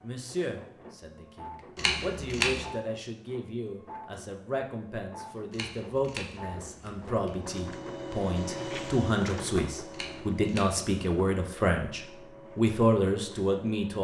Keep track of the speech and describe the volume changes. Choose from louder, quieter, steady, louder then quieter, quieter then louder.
louder.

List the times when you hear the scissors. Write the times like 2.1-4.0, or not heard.
1.8-2.6, 5.5-7.5, 9.9-10.9.